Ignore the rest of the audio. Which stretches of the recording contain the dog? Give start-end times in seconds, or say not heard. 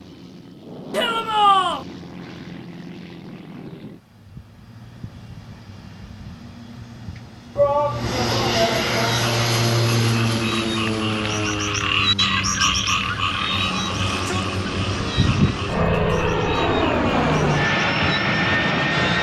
not heard.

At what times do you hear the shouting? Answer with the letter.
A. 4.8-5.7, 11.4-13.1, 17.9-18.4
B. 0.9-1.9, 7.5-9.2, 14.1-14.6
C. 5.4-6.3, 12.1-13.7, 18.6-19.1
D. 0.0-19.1
B.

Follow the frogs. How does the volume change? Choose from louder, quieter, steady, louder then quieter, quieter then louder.
louder then quieter.